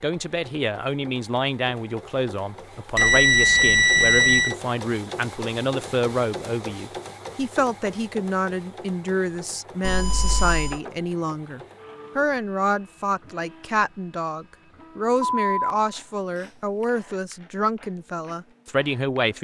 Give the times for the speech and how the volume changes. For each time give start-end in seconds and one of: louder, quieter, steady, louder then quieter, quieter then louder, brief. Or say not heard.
0.0-19.3 steady.